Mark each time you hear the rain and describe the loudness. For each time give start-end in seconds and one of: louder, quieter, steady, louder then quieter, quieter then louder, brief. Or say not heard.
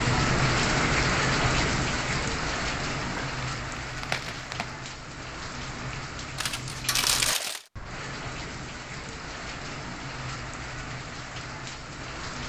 0.0-12.4 quieter.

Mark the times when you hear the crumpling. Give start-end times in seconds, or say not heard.
3.0-4.8, 6.3-7.7.